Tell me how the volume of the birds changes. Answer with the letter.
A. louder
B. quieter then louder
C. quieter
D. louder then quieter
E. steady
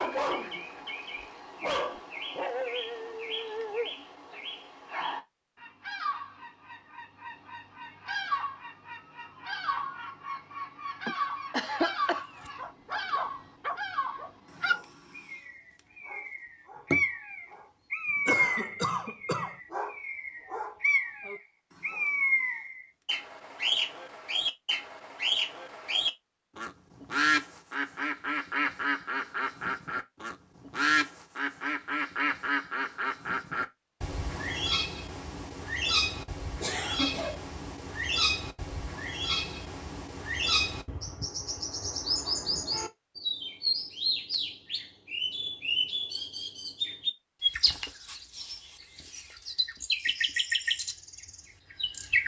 A.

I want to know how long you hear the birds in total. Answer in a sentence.
The birds can be heard for 52 seconds in total.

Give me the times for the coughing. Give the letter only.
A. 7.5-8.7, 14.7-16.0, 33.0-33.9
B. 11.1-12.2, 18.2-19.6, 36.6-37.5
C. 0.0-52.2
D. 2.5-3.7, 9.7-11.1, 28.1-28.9
B.